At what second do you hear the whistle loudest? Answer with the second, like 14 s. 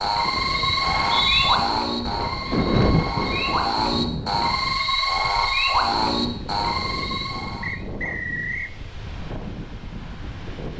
1 s.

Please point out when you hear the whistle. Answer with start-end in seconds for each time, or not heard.
0.8-1.5, 7.6-8.8.